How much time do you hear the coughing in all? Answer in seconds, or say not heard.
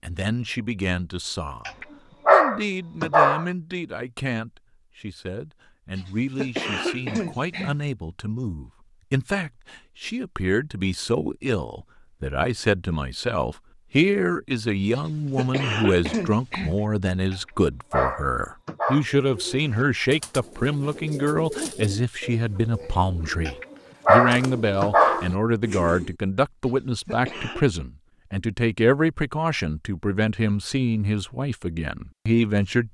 5 s.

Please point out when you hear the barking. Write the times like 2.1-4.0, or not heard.
1.6-3.5, 17.3-19.1, 23.4-25.2.